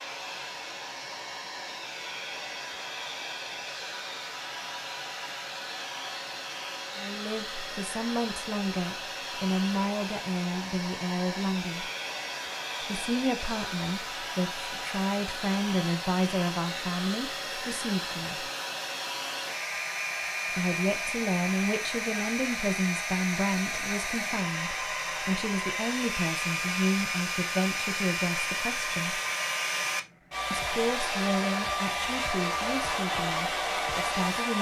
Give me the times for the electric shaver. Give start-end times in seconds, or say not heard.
not heard.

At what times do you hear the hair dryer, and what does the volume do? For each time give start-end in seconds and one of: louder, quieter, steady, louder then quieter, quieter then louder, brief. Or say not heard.
0.0-34.5 louder.